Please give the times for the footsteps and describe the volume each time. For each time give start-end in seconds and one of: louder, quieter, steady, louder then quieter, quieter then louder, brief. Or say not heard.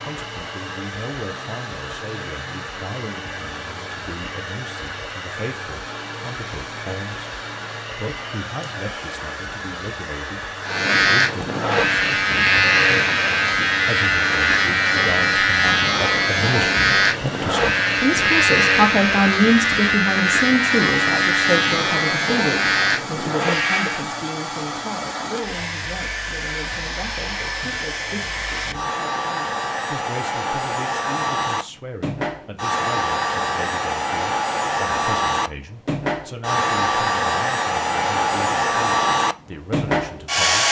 not heard.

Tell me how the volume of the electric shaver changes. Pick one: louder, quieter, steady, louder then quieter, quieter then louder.
steady.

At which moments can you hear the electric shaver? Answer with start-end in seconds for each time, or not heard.
10.6-24.1.